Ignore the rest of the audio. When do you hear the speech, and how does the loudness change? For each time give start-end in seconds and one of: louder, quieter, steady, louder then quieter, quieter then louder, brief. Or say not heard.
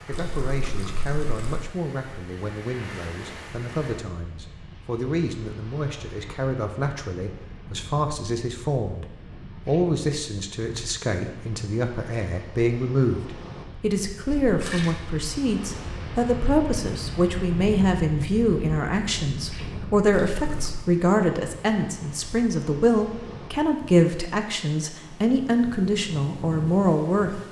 0.1-27.4 louder.